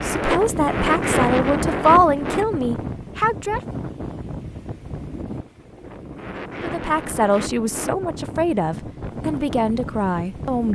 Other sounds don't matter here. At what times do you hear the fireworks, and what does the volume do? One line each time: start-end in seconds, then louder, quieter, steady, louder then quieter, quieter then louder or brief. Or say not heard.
not heard.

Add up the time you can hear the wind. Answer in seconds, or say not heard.
11 s.